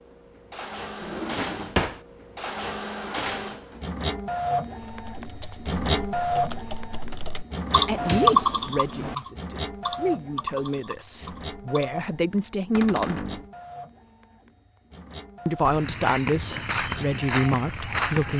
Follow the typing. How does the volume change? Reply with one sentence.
The loudness of the typing goes up, then down.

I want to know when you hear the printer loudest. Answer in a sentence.
The volume of the printer peaks at 6 seconds.